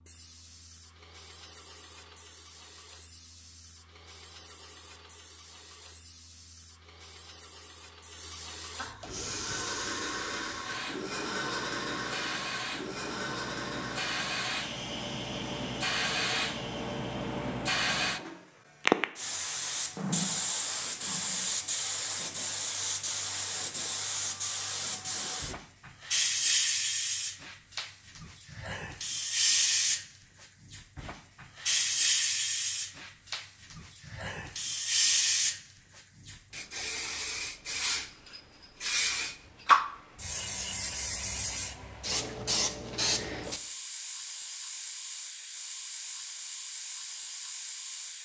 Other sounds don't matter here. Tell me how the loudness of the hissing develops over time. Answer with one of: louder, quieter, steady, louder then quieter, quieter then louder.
louder.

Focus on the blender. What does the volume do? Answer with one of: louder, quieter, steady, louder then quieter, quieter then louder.
quieter.